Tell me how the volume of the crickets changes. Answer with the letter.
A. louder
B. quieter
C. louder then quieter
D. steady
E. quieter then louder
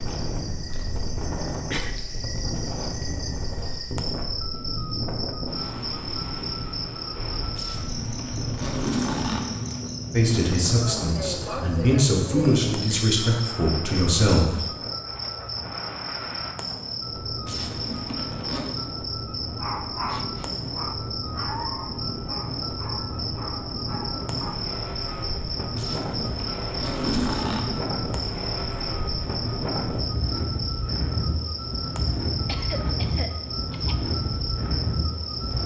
D.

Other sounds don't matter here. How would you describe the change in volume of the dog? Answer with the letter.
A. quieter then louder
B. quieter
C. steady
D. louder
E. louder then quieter
B.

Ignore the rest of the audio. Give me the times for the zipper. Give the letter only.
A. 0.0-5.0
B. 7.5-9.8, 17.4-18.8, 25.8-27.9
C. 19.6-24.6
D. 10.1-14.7
B.